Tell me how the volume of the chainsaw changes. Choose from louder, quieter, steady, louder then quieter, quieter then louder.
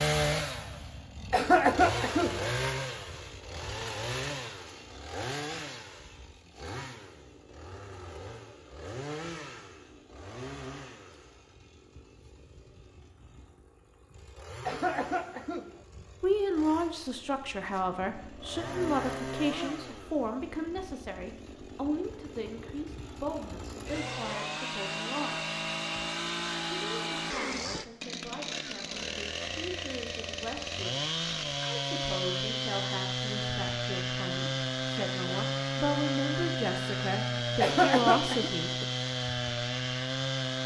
quieter then louder.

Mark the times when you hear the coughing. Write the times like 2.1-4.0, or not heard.
1.3-2.5, 14.7-15.8, 37.6-38.5.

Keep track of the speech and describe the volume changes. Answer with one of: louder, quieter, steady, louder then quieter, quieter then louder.
quieter then louder.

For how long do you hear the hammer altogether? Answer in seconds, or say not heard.
not heard.